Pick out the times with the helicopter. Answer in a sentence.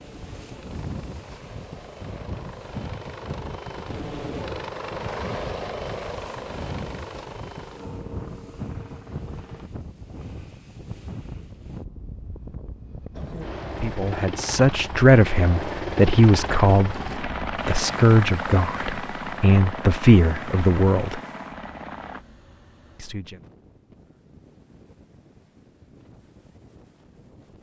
You can hear the helicopter from 0.0 to 9.7 s and from 13.2 to 22.2 s.